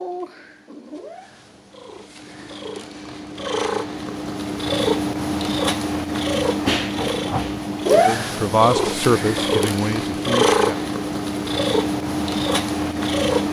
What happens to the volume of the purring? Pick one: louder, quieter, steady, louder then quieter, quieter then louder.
louder.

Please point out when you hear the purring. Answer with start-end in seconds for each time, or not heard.
0.0-13.4.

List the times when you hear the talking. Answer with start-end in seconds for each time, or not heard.
8.1-10.8.